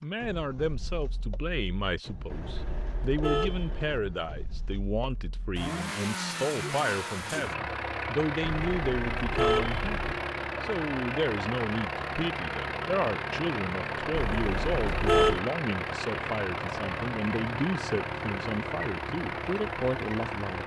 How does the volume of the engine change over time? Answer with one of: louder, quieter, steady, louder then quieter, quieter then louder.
louder.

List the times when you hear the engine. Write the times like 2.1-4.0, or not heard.
0.0-20.6.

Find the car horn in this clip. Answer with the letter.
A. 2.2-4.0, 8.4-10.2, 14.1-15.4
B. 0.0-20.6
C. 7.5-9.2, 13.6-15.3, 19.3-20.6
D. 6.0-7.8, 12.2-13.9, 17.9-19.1
A.